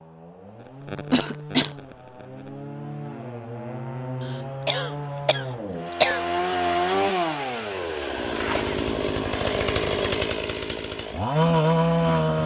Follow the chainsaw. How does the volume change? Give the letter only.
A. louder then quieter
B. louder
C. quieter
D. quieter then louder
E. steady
B.